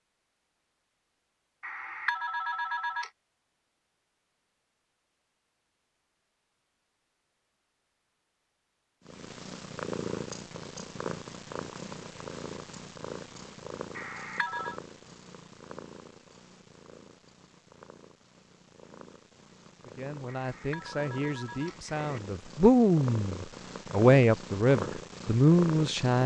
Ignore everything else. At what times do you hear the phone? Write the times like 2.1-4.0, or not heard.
1.6-3.1, 13.9-14.8, 20.2-22.2.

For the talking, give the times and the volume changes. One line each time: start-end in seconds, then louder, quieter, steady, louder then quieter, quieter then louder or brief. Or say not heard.
19.9-26.2 louder.